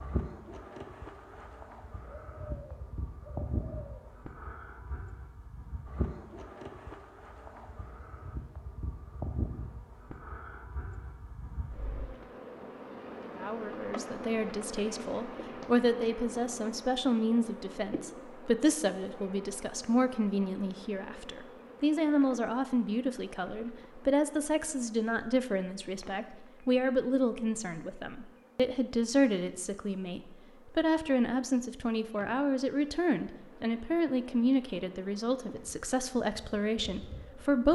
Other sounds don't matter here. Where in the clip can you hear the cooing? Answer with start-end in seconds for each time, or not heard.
2.0-4.0.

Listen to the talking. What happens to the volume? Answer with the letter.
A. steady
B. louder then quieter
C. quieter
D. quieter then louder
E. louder
A.